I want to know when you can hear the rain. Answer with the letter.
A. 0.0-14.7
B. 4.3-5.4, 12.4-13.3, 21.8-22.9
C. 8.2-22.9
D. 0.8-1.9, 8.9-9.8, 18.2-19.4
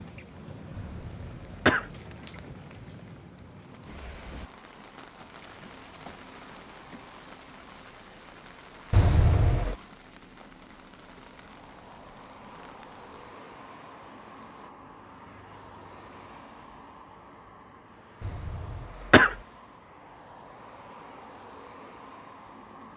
A.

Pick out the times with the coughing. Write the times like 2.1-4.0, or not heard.
0.8-1.9, 8.9-9.8, 18.2-19.4.